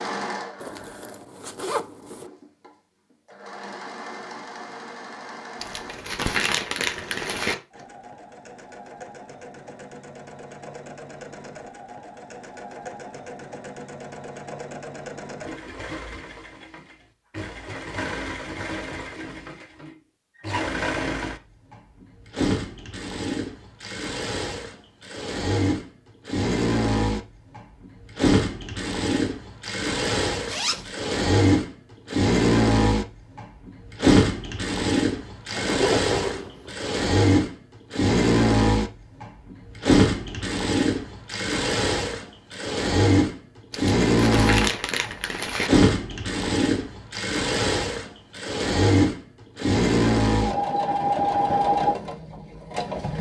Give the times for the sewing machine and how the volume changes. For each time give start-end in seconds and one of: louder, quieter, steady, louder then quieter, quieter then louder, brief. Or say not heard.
0.0-53.1 louder.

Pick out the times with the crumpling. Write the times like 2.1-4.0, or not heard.
5.6-7.5, 43.7-45.7.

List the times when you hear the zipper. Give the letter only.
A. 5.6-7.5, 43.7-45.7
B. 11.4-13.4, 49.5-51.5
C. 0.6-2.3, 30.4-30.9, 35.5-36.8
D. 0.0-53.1
C.